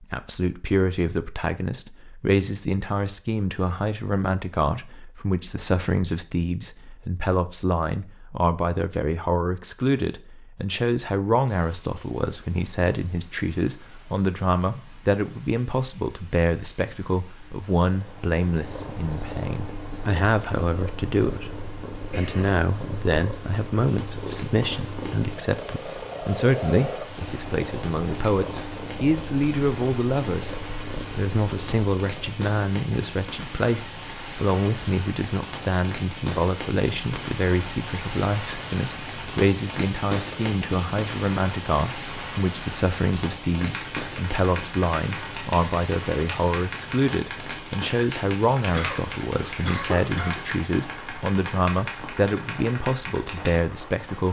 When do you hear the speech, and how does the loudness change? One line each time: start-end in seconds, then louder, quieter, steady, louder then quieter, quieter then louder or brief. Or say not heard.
0.0-54.2 steady.